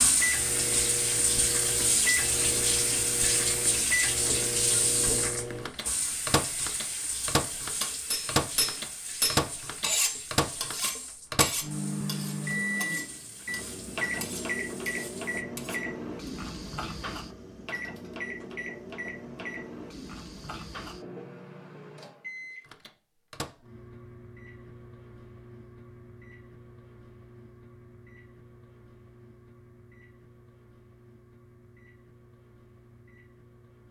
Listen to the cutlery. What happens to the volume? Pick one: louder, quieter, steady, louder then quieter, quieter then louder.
quieter.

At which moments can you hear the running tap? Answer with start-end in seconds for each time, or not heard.
0.0-15.4.